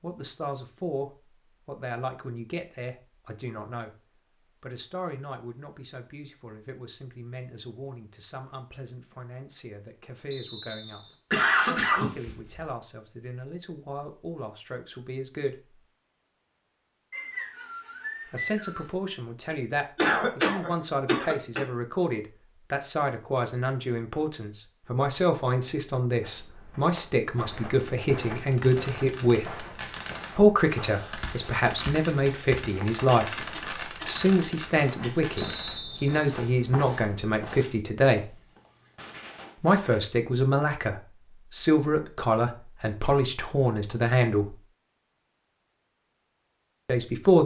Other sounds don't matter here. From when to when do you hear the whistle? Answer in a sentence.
You can hear the whistle from 10.3 to 11.2 s, from 17.1 to 18.9 s and from 35.4 to 36.2 s.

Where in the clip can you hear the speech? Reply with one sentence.
You can hear the speech from 0.0 to 4.0 s, from 4.6 to 15.8 s, from 18.2 to 29.6 s, from 30.4 to 38.4 s, from 39.6 to 44.5 s and from 46.9 to 47.4 s.